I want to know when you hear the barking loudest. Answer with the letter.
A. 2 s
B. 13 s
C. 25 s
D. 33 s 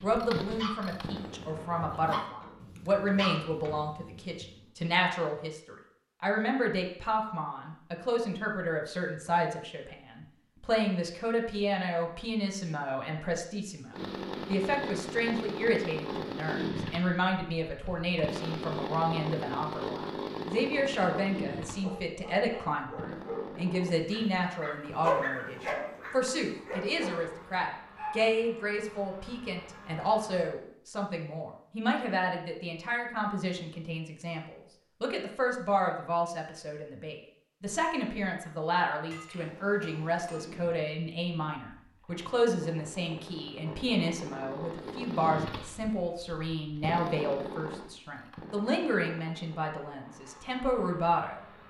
C.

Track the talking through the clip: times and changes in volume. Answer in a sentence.
You can hear the talking from 0.0 to 51.4 s, at a steady volume.